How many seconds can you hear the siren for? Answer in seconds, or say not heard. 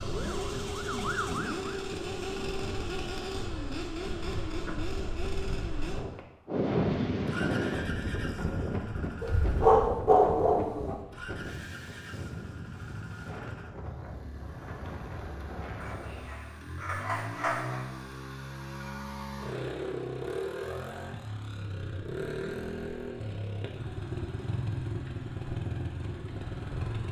2 s.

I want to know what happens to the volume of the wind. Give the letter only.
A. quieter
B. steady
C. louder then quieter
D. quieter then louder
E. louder
C.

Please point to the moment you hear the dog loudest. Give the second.
10 s.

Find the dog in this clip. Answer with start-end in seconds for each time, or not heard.
9.2-11.0, 15.8-17.9.